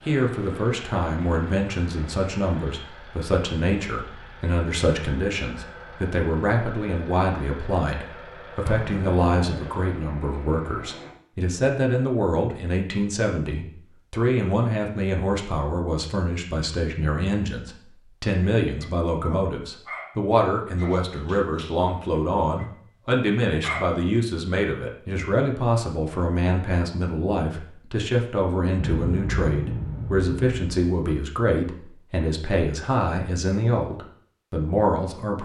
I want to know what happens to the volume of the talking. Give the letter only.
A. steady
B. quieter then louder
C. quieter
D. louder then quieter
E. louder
A.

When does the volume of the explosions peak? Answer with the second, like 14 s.
29 s.